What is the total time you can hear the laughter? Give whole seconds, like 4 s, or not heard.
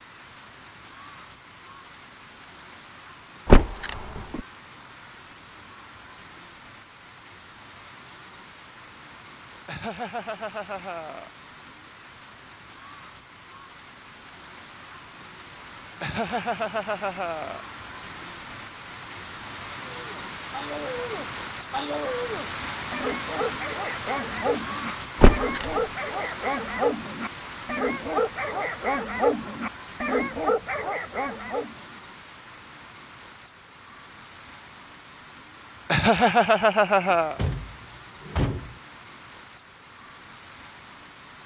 5 s.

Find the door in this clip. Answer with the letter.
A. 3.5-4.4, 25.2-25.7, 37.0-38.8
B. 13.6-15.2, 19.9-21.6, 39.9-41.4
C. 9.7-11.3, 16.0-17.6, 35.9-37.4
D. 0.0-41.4
A.